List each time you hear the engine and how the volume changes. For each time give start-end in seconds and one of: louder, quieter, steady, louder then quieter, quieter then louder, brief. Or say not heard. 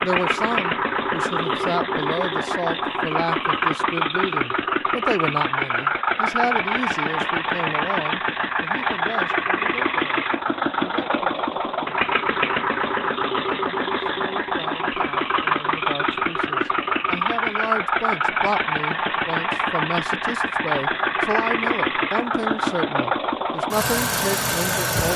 0.0-25.1 steady.